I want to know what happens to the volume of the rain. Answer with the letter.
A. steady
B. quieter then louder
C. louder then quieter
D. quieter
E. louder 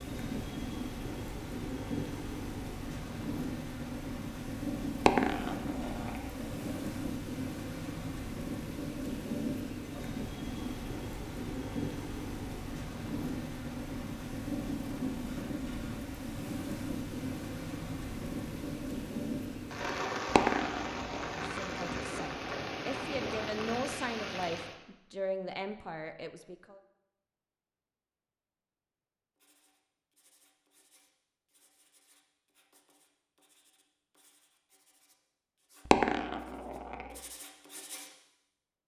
A.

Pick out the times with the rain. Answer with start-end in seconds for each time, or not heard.
0.0-24.8.